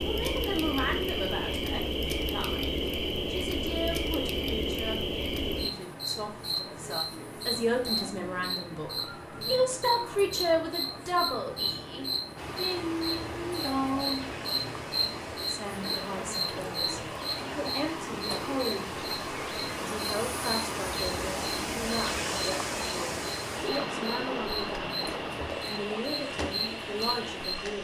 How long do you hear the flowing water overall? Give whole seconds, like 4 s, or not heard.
15 s.